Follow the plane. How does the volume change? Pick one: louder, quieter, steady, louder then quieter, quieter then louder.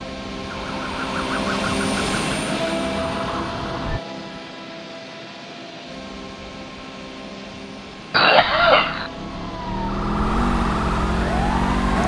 quieter.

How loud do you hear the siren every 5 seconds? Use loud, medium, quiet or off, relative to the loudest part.
medium, medium, loud.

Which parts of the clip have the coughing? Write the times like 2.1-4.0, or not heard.
8.1-9.1.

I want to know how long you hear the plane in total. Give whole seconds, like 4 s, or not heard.
12 s.